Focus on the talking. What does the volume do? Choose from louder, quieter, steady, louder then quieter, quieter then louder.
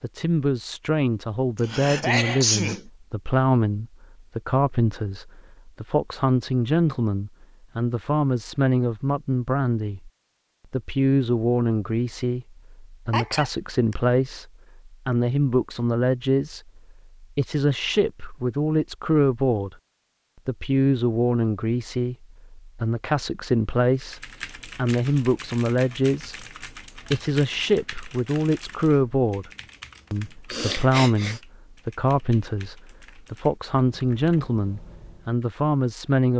steady.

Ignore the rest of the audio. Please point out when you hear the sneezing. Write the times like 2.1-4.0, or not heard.
1.6-2.8, 13.1-13.9, 30.5-31.4.